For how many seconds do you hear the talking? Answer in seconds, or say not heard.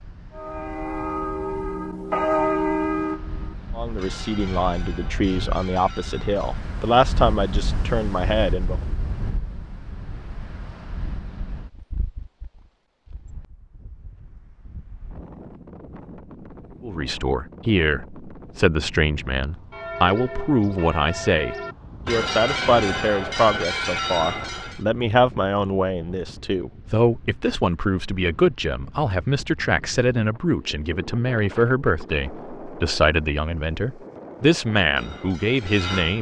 24 s.